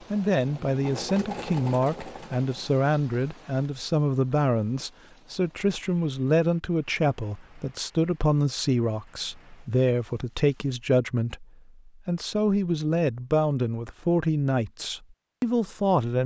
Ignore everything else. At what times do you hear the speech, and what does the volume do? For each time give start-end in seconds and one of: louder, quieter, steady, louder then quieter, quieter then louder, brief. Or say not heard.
0.1-16.2 steady.